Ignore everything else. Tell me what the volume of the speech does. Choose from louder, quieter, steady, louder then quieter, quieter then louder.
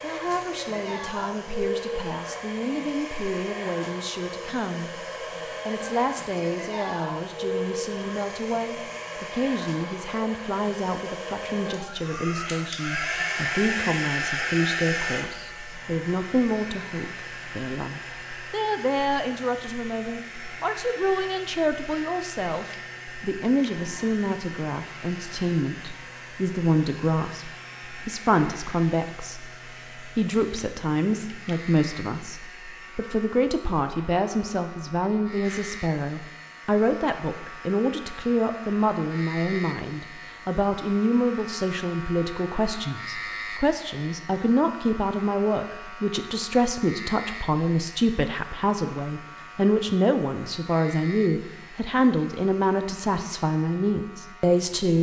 louder.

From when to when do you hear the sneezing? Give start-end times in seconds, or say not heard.
not heard.